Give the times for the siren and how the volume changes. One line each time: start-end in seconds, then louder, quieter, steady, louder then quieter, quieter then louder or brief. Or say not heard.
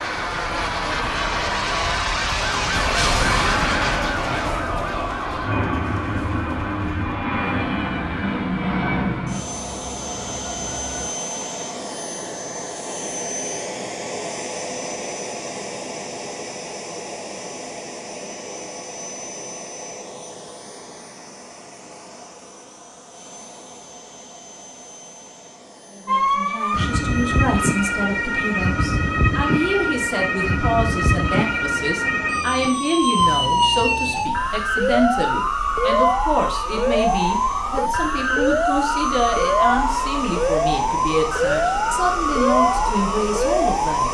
0.0-11.1 louder then quieter
26.1-44.0 steady.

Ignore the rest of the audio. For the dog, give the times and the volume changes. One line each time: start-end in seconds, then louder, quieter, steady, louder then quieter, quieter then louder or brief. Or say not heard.
not heard.